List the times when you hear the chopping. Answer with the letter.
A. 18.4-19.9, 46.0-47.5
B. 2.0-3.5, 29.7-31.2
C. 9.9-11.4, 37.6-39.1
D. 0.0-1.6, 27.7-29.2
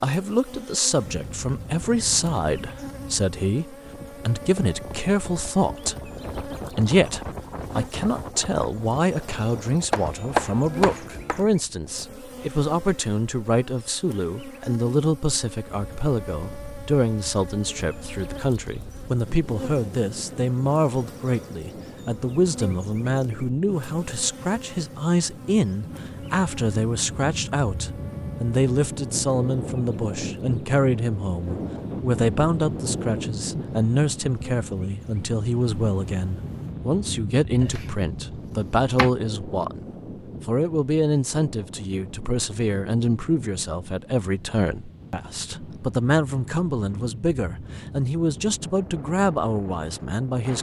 C.